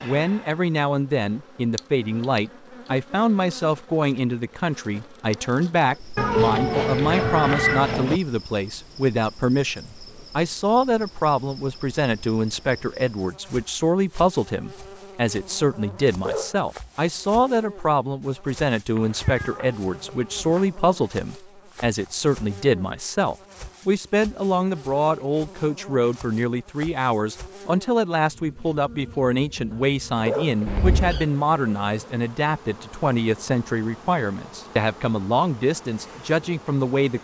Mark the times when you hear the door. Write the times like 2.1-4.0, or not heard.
not heard.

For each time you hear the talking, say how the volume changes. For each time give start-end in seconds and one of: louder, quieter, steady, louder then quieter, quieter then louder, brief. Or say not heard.
0.0-37.1 steady.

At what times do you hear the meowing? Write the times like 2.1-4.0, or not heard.
6.2-8.2, 18.9-20.6, 30.6-31.2.